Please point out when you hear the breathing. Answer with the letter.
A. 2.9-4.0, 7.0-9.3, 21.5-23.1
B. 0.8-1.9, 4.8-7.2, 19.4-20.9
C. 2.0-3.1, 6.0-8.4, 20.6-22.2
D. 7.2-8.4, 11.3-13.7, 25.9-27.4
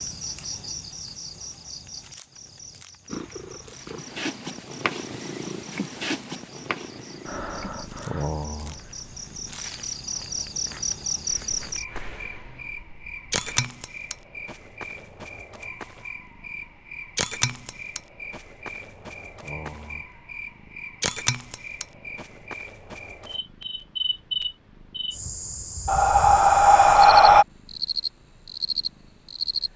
D.